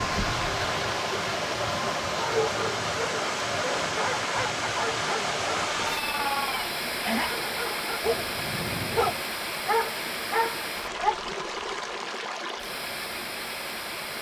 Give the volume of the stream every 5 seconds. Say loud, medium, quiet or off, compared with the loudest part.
loud, loud, medium.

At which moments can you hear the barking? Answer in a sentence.
You can hear the barking from 2.1 to 11.2 s.